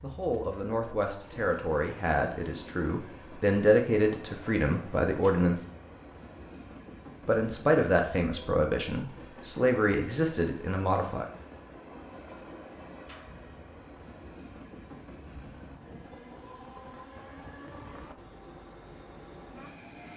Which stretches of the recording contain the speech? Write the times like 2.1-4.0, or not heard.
0.0-5.7, 7.2-11.2.